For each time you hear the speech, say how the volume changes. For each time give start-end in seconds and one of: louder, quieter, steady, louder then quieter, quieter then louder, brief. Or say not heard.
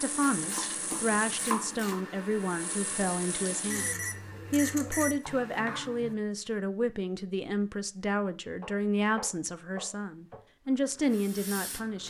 0.0-12.0 steady.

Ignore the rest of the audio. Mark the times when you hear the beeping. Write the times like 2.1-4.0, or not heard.
3.6-5.2.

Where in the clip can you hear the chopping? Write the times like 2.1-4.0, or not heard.
0.2-2.0, 5.2-6.2, 8.6-10.4.